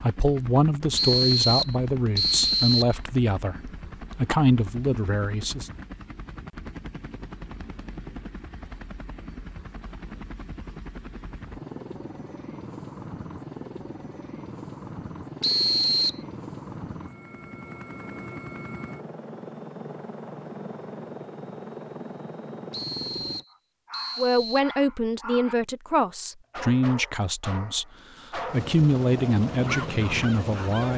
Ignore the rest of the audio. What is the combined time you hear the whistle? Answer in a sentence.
You can hear the whistle for 5 seconds altogether.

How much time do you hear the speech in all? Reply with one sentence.
You can hear the speech for 12 seconds altogether.